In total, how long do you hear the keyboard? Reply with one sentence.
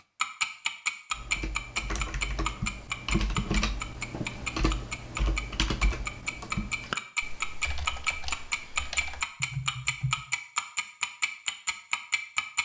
The keyboard can be heard for 9 seconds in total.